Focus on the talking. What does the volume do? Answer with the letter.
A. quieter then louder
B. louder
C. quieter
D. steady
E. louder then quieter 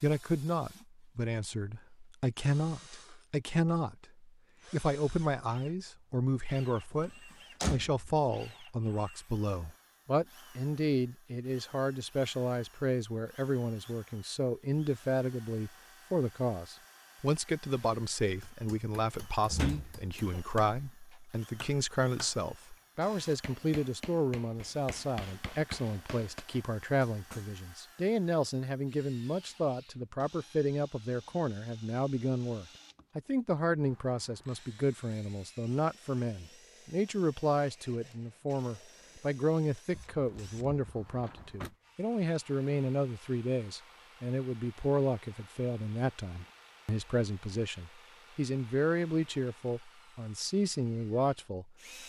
D.